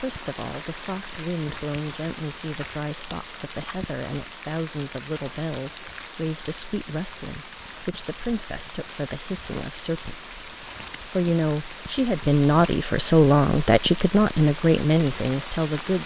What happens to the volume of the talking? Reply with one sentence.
The loudness of the talking goes up.